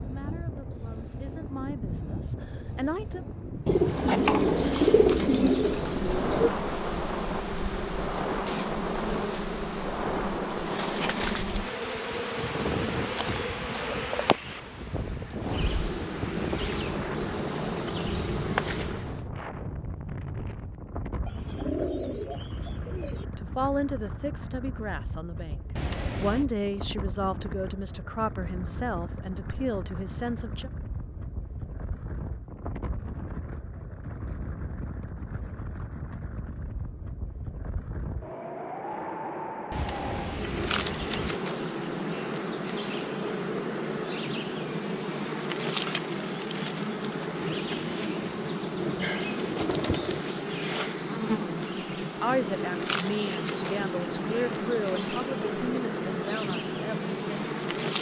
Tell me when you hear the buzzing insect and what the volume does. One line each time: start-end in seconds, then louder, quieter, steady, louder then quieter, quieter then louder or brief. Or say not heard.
3.5-19.2 steady
40.2-57.9 steady.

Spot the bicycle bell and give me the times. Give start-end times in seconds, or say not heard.
25.8-26.4, 39.7-41.4.